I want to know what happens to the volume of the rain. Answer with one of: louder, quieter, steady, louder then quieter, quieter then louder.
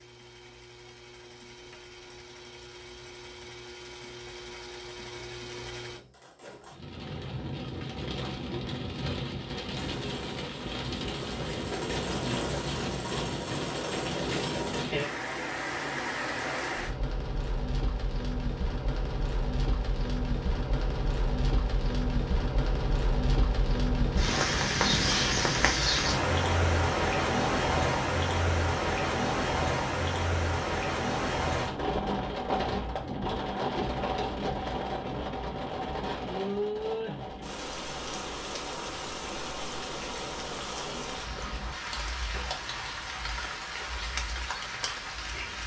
louder then quieter.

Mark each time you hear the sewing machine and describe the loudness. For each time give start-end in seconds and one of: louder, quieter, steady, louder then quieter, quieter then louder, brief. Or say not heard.
0.0-6.8 louder
9.7-14.9 louder.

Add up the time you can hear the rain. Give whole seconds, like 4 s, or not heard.
39 s.